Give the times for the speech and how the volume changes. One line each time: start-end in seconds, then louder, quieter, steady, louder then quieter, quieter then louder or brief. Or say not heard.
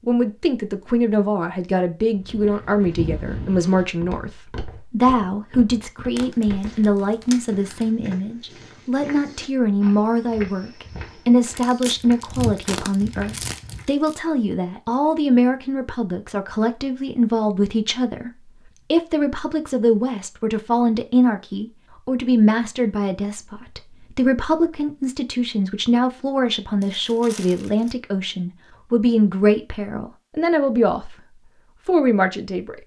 0.1-31.1 steady
31.9-32.8 brief.